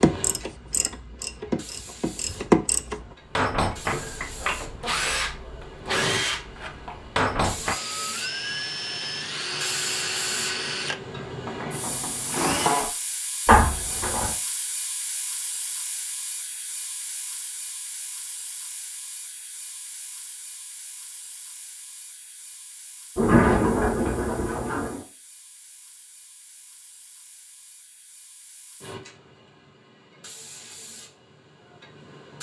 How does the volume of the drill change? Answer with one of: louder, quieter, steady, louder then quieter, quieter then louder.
steady.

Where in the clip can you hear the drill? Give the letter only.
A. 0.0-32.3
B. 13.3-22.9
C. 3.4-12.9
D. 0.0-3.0
C.